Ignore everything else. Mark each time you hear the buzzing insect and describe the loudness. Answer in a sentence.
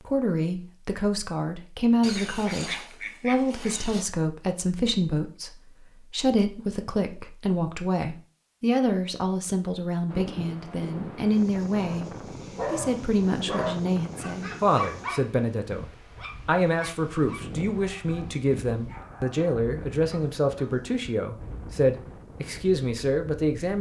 You can't hear the buzzing insect here.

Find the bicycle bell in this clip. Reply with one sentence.
You can't hear the bicycle bell here.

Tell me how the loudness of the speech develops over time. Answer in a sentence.
The volume of the speech stays about the same.